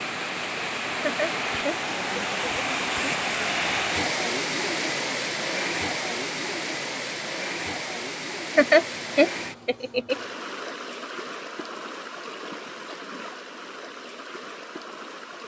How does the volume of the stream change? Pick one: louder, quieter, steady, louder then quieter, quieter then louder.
quieter.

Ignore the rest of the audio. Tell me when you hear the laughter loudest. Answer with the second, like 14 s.
9 s.